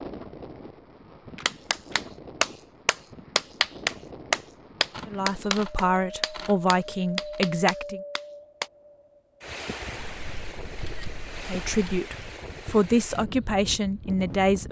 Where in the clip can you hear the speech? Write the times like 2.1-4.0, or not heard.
5.0-8.0, 11.4-14.6.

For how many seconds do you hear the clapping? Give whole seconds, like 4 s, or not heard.
7 s.